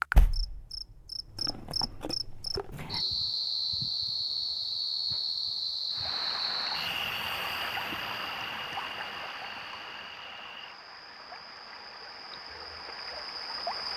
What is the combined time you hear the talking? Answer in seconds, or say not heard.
not heard.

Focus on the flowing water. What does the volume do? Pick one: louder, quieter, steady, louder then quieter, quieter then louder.
quieter.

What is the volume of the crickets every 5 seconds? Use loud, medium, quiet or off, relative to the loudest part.
loud, loud, medium.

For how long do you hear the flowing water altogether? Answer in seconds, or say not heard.
8 s.